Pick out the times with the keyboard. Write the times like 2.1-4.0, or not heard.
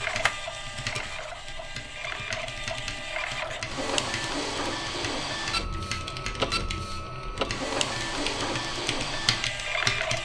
0.0-10.2.